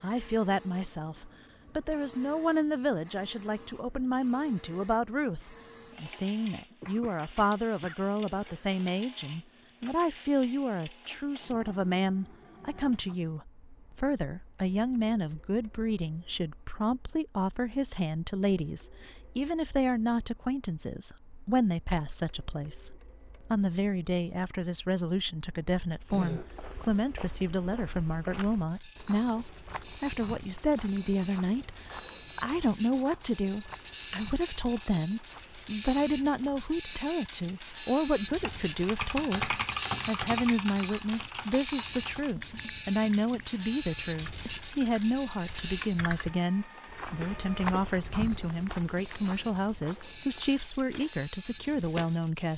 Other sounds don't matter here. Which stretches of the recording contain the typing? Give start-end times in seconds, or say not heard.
38.4-46.4.